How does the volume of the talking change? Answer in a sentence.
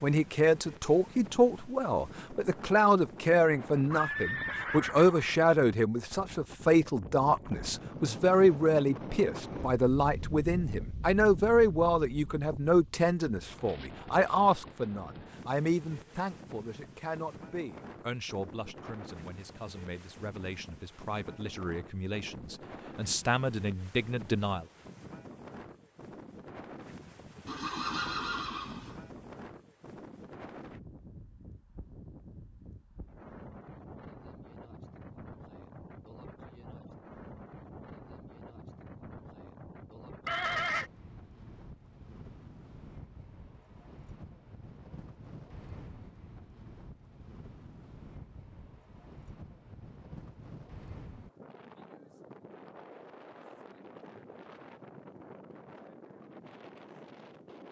The loudness of the talking goes down.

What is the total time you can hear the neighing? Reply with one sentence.
You can hear the neighing for 4 seconds altogether.